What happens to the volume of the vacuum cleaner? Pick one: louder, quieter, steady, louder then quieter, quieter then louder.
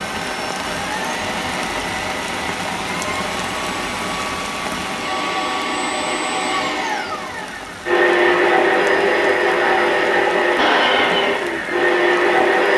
louder.